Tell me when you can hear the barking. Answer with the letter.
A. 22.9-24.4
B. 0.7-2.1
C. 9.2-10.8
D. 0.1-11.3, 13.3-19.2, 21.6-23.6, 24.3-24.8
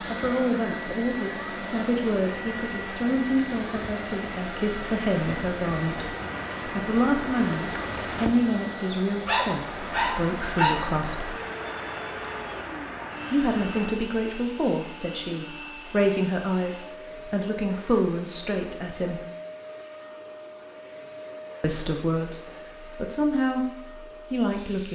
C.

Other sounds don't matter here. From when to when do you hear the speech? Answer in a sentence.
The speech can be heard from 0.1 to 11.3 s, from 13.3 to 19.2 s, from 21.6 to 23.6 s and from 24.3 to 24.8 s.